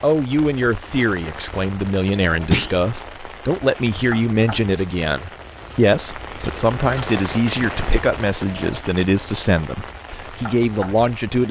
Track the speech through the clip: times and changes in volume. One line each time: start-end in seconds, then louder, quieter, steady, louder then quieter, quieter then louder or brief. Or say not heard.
0.0-11.4 steady.